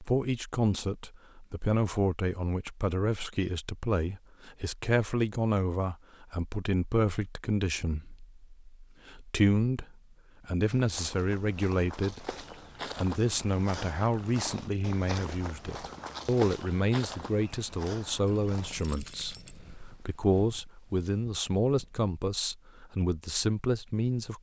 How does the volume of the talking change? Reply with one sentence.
The volume of the talking stays about the same.